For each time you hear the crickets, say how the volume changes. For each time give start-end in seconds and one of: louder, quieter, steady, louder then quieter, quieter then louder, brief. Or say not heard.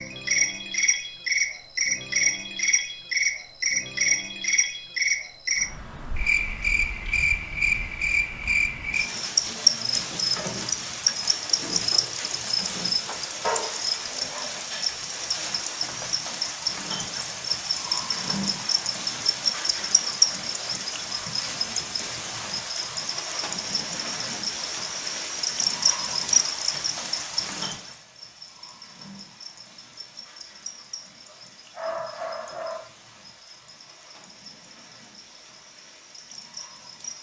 0.0-37.1 quieter.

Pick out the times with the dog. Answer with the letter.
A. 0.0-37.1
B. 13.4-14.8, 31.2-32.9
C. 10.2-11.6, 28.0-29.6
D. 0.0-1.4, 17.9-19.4
B.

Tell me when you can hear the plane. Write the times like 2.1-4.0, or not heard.
not heard.